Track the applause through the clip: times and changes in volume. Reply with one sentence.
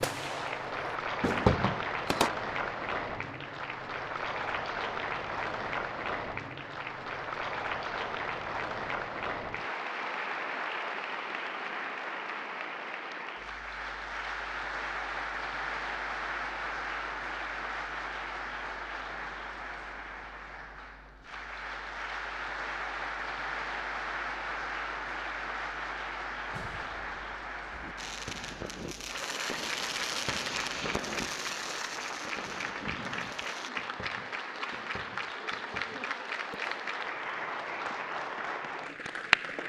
The applause can be heard from 0.0 to 39.6 s, at a steady volume.